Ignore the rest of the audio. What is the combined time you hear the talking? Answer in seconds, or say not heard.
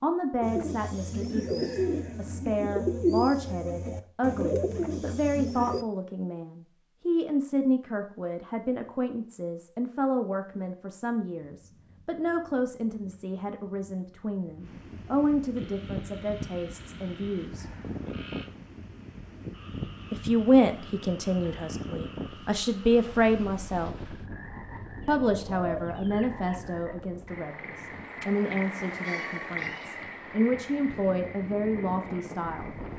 29 s.